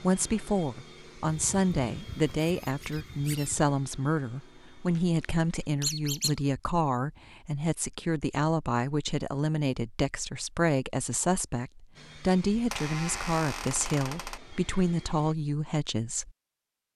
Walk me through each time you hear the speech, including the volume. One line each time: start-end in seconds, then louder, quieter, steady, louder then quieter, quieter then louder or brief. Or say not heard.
0.0-16.3 steady.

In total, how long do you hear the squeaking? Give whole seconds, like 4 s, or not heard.
5 s.